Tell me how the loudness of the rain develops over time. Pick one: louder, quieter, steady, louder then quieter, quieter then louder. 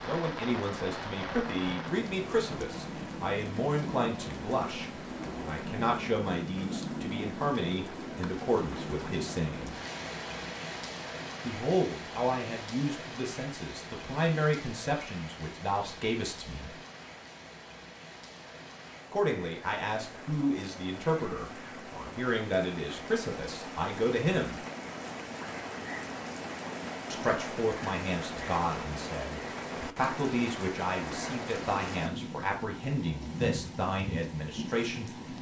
quieter then louder.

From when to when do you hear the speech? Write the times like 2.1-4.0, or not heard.
0.1-9.8, 11.4-16.8, 19.1-24.6, 27.1-35.1.